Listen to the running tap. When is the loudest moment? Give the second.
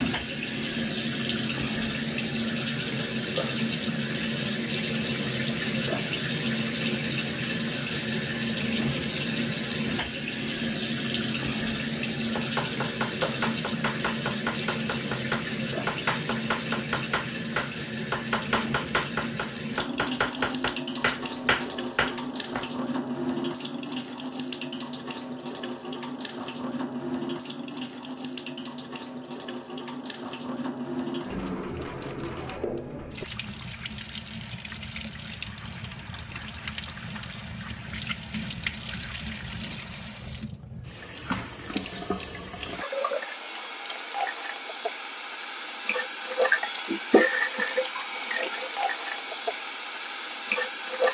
47 s.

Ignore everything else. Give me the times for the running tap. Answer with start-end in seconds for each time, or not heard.
0.0-51.0.